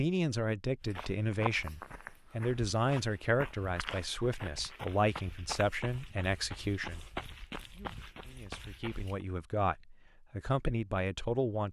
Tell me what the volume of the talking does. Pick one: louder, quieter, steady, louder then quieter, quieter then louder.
quieter then louder.